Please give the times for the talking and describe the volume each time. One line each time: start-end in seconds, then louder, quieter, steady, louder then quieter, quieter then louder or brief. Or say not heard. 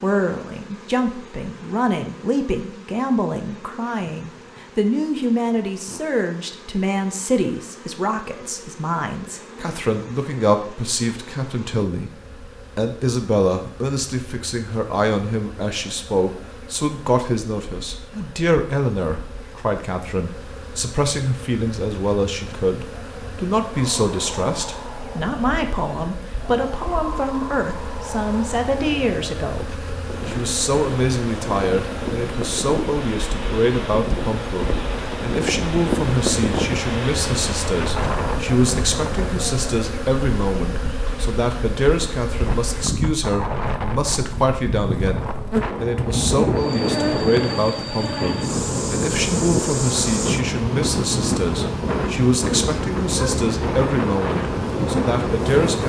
0.0-12.1 steady
12.8-55.8 steady.